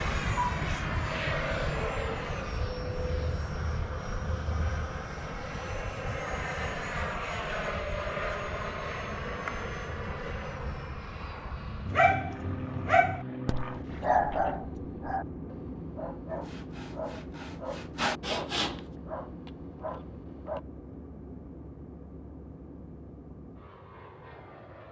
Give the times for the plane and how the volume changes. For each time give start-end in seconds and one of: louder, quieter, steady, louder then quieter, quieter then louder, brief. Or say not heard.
0.0-24.8 quieter.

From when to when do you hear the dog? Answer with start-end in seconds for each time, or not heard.
11.8-20.6.